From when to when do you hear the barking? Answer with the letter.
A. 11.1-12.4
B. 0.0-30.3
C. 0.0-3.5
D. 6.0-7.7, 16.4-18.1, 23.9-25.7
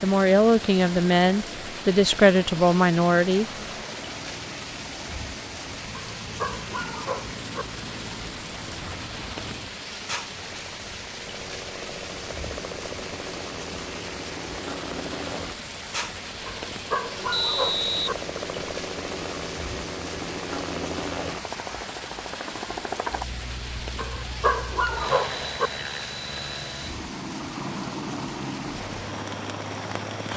D.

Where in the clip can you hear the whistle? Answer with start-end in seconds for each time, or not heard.
17.3-18.6.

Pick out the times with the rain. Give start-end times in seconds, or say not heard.
0.0-30.3.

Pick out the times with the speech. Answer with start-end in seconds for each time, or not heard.
0.0-3.5.